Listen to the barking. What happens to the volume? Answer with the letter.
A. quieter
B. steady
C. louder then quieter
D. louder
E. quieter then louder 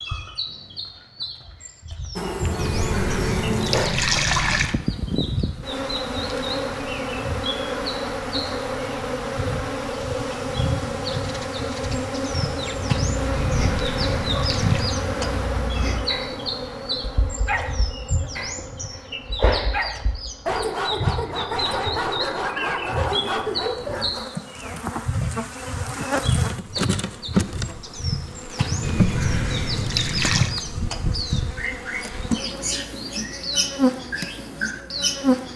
D.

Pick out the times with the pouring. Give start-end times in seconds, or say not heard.
2.5-4.8, 13.3-14.9, 28.8-30.6.